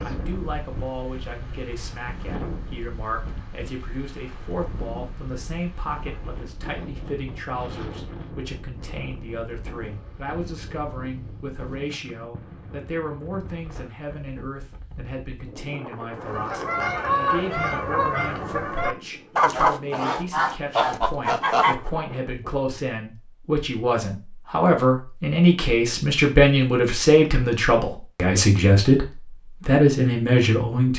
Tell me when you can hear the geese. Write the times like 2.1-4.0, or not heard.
16.2-21.9.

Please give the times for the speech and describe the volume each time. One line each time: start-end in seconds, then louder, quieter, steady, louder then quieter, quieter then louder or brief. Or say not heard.
0.0-30.9 louder.